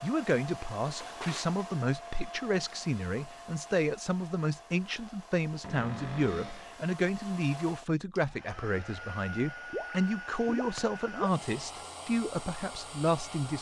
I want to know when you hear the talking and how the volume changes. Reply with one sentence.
You can hear the talking from 0.0 to 13.5 s, at a steady volume.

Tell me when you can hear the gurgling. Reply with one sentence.
You can hear the gurgling from 9.7 to 11.4 s.